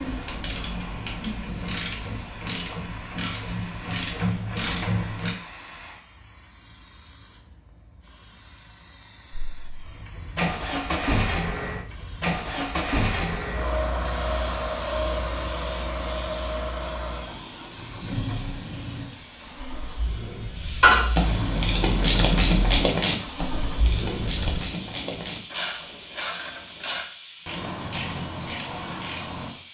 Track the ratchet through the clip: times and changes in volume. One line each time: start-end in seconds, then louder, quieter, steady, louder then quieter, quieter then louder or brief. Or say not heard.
0.0-5.3 louder
20.8-29.5 quieter.